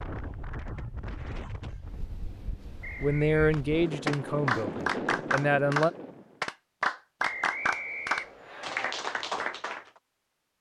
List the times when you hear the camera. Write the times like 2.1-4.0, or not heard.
not heard.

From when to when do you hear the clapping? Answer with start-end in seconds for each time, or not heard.
3.5-9.9.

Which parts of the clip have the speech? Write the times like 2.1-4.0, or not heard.
3.0-5.9.